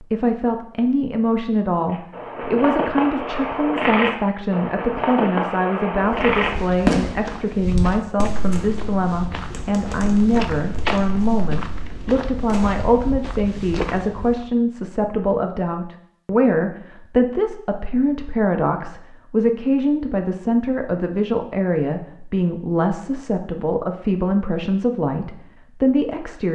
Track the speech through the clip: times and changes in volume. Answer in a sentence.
You can hear the speech from 0.0 to 26.5 s, at a steady volume.